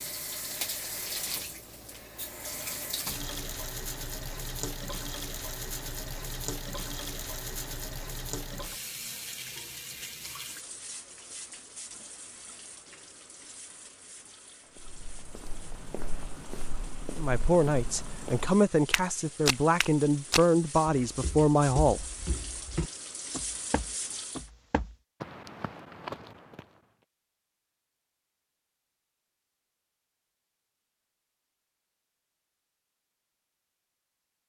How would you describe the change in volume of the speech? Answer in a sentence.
The volume of the speech stays about the same.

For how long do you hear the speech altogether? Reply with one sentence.
The speech can be heard for 5 seconds in total.